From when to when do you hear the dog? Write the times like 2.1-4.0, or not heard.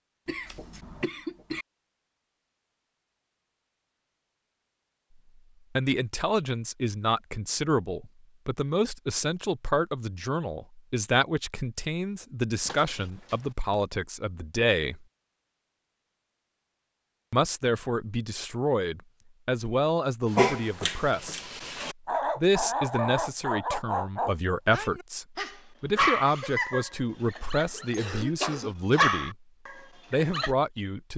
20.3-30.5.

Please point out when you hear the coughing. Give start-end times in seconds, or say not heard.
0.2-1.6, 27.1-29.1.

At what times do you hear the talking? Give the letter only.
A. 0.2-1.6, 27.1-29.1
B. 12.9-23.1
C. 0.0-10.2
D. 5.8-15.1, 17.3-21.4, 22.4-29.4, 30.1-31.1
D.